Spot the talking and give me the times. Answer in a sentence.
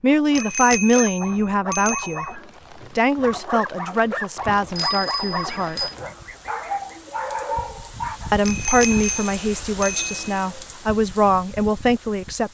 You can hear the talking from 0.0 to 5.8 s and from 8.3 to 12.4 s.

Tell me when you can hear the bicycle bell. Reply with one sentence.
The bicycle bell can be heard from 0.3 to 2.4 s, from 4.5 to 6.0 s and from 8.4 to 10.2 s.